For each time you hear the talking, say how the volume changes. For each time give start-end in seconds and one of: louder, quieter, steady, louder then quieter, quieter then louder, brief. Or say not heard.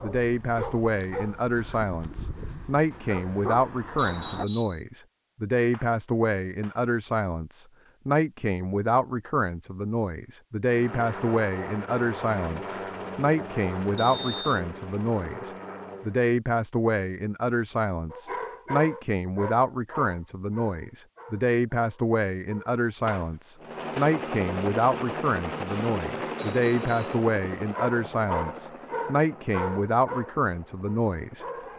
0.0-31.4 steady.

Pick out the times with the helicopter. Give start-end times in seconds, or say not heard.
10.7-16.2, 23.6-31.7.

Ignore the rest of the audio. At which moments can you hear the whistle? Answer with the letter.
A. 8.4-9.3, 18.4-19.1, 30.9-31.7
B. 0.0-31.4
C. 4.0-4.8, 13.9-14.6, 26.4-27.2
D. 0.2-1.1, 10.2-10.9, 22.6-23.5
C.